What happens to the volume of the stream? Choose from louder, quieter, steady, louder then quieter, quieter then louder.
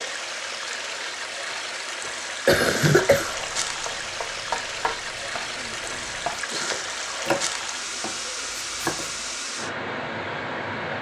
steady.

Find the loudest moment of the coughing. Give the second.
3 s.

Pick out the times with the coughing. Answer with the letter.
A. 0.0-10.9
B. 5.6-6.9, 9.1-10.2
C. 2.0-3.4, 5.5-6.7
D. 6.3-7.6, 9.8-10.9
C.